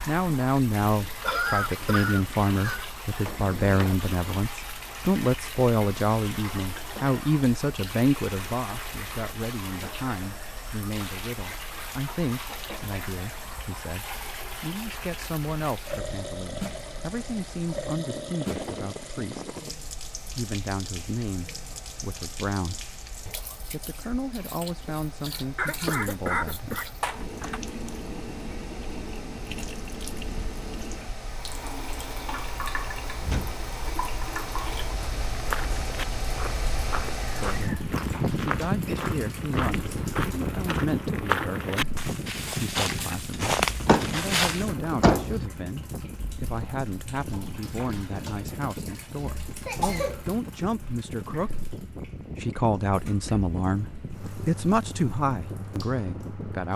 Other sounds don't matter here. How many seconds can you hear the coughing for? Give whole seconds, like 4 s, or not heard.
5 s.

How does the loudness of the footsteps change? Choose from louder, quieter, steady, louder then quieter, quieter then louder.
louder.